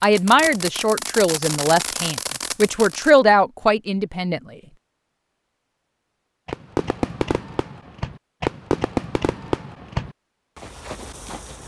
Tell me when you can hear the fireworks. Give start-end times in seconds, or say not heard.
0.0-3.1, 6.5-11.6.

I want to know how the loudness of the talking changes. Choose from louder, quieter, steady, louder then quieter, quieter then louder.
quieter then louder.